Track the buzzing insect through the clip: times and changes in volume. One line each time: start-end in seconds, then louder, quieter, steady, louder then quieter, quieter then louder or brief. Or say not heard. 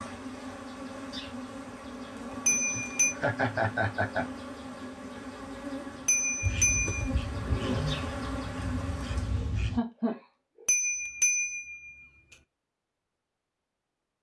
0.0-9.7 louder.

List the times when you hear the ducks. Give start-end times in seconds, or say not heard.
6.4-9.8.